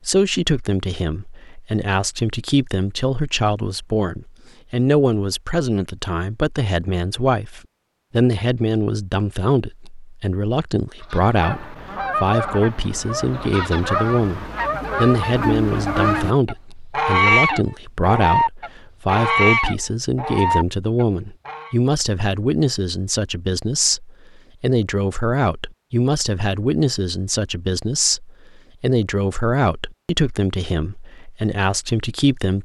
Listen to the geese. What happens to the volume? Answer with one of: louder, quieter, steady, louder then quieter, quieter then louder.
louder.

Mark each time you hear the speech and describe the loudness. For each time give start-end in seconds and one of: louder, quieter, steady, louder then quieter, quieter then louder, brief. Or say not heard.
0.1-32.6 steady.